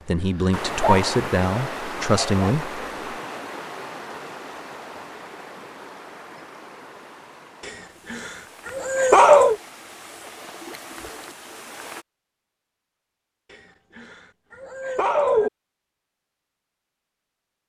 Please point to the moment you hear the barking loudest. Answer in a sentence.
The volume of the barking peaks at 9 seconds.